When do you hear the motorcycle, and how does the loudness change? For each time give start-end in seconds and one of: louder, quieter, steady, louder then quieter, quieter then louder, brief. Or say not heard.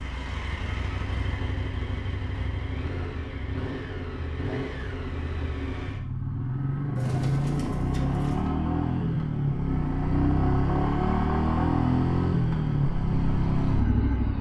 0.0-14.3 louder.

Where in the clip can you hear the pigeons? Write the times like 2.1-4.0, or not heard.
7.0-8.6.